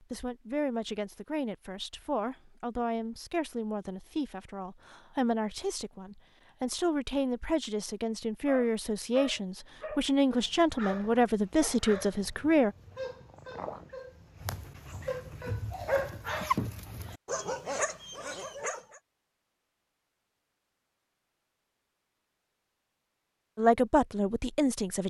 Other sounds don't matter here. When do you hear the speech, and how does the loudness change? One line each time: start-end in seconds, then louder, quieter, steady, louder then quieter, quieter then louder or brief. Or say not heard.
0.1-12.8 louder
23.6-25.0 brief.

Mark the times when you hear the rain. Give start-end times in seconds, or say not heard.
not heard.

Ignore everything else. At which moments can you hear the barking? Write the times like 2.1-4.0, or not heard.
8.4-19.0.